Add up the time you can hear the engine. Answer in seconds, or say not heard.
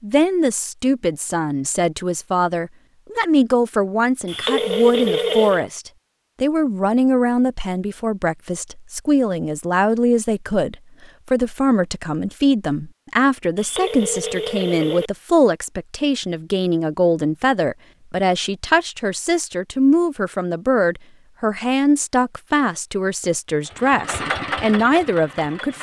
2 s.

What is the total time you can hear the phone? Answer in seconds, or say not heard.
3 s.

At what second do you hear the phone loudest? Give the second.
5 s.